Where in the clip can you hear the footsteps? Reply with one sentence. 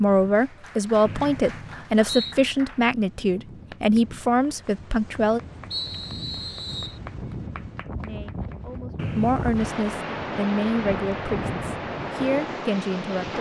You can't hear the footsteps here.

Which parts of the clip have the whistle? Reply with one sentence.
The whistle can be heard from 1.1 to 2.4 s, from 5.7 to 7.0 s and from 8.9 to 9.9 s.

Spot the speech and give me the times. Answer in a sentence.
The speech can be heard from 0.0 to 5.4 s and from 8.0 to 13.3 s.